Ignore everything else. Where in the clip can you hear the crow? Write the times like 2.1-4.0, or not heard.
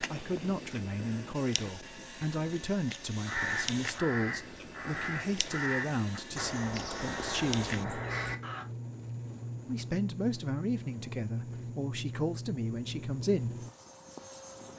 3.2-8.7.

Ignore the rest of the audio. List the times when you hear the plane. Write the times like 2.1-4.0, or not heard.
0.0-14.7.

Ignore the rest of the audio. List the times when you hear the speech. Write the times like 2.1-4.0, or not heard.
0.0-8.0, 9.7-13.7.